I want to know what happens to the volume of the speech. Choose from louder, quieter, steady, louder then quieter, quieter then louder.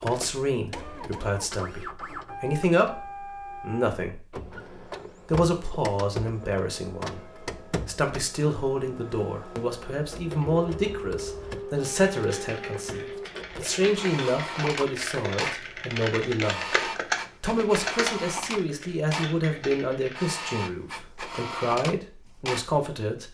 steady.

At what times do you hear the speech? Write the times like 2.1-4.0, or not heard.
0.0-4.3, 5.2-16.6, 17.4-23.2.